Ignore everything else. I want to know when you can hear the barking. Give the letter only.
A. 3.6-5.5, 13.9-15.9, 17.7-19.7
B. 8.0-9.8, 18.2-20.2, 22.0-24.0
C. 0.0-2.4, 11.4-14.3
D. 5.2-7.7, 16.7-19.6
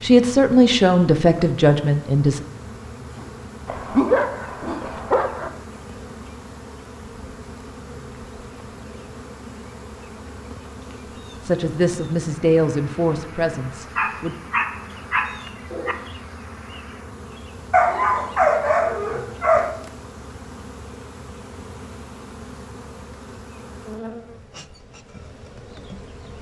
A.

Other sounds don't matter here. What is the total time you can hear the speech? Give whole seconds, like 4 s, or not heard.
5 s.